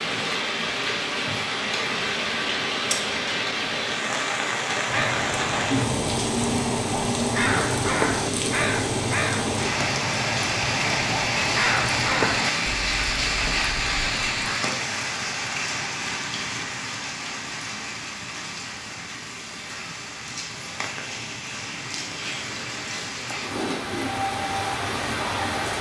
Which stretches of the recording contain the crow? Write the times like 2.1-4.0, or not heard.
4.8-14.6.